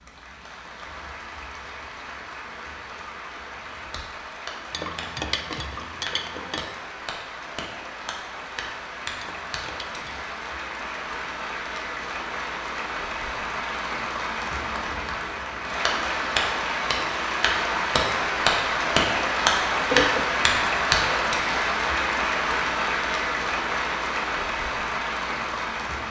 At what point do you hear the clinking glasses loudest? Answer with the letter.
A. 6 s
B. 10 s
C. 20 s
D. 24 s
C.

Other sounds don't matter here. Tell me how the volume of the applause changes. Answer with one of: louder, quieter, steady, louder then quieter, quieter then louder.
louder.